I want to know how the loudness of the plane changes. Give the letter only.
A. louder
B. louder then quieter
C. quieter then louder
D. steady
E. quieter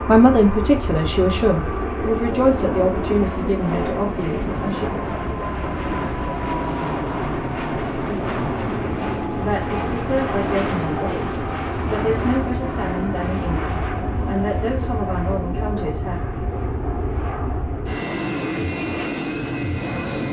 D.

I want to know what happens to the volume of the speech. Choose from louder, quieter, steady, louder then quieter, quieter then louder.
quieter.